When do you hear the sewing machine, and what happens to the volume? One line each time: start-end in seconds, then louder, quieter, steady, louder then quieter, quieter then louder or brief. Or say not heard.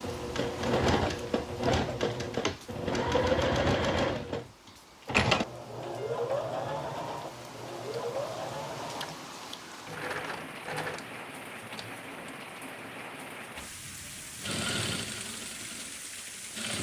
0.0-12.3 quieter
14.4-16.7 brief.